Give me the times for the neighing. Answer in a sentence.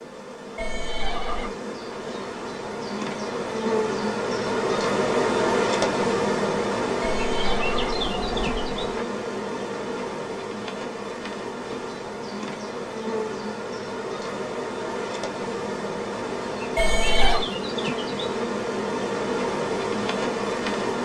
You can hear the neighing from 0.6 to 1.5 s, from 7.0 to 9.1 s and from 16.8 to 17.4 s.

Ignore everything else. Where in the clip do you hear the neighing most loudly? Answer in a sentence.
The volume of the neighing peaks at 17 seconds.